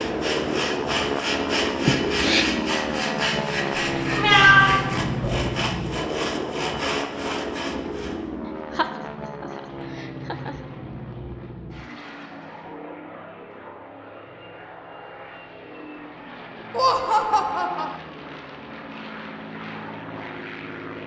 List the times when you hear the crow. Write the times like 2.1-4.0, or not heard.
not heard.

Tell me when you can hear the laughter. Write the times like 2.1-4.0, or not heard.
1.9-2.5, 8.7-10.6, 16.7-17.9.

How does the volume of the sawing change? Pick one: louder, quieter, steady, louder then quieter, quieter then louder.
steady.